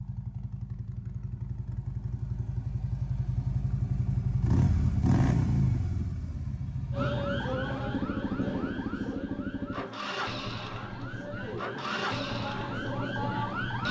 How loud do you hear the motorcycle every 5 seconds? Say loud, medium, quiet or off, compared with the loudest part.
loud, loud, medium.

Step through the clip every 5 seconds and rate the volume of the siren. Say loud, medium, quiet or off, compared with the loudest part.
off, loud, loud.